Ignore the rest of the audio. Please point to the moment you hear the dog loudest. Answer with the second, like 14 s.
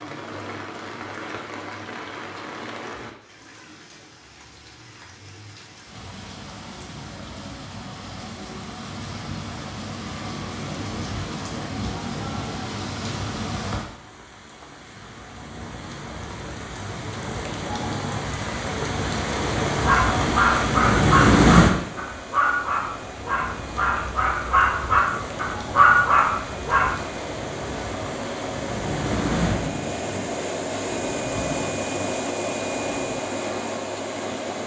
26 s.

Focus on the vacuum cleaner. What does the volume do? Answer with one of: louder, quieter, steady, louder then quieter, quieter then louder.
louder.